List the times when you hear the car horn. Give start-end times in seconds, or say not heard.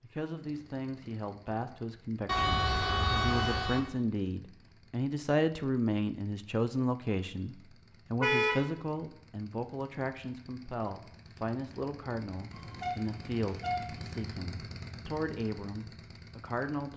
2.2-3.8, 8.2-8.7, 12.5-14.1.